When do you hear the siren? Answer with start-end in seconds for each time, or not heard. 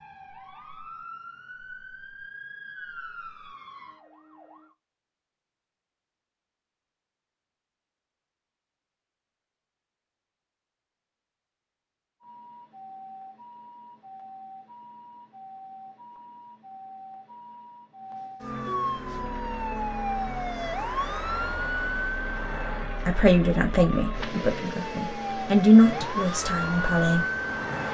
0.0-4.8, 12.2-27.8.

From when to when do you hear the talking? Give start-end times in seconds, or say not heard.
23.1-27.2.